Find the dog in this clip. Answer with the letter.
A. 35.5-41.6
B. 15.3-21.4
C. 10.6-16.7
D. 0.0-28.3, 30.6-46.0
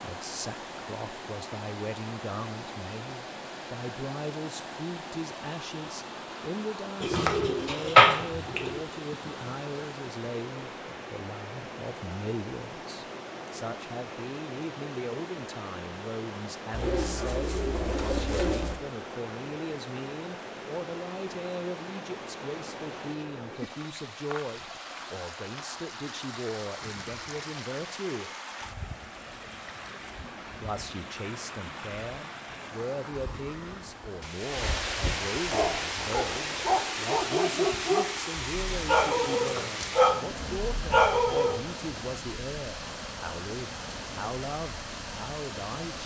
A.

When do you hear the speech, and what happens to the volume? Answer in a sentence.
You can hear the speech from 0.0 to 28.3 s, at a steady volume; and from 30.6 to 46.0 s, at a steady volume.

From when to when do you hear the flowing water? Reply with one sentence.
You can hear the flowing water from 0.0 to 46.0 s.